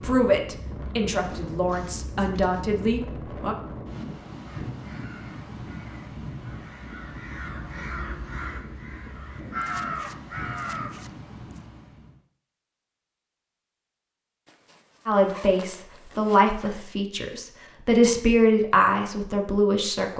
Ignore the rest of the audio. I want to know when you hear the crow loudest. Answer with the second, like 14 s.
10 s.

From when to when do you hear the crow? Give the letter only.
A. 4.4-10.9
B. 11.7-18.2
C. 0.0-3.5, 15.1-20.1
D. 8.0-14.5
A.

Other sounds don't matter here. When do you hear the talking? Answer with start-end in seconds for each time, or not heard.
0.0-3.5, 15.1-20.1.